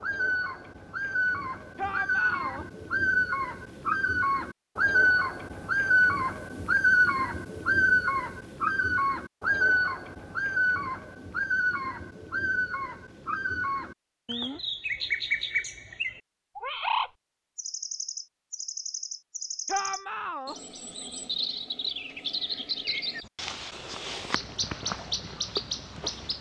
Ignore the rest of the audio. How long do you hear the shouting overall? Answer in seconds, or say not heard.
2 s.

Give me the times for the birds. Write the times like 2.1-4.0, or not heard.
0.0-26.3.